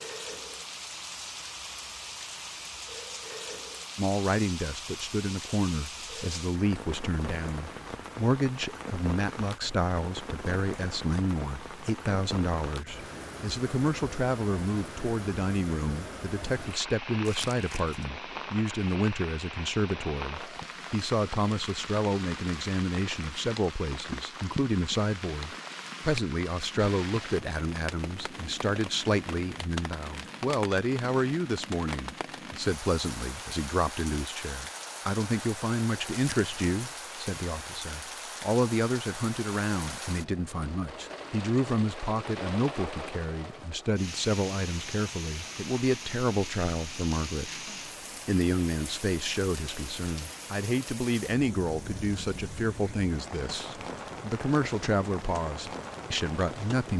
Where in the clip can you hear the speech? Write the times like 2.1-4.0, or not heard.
4.0-47.5, 48.2-56.9.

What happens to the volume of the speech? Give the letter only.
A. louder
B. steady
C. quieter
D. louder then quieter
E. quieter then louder
B.